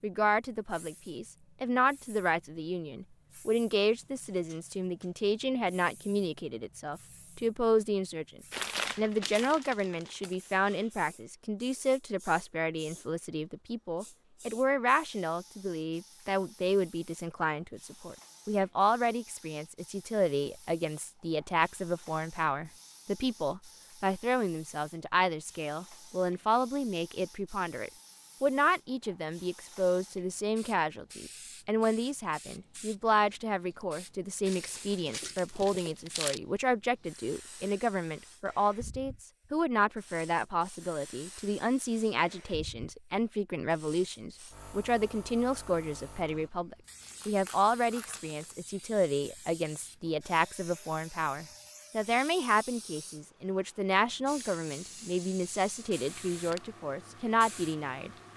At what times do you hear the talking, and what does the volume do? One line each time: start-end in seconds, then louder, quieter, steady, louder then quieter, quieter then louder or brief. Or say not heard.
0.0-58.1 steady.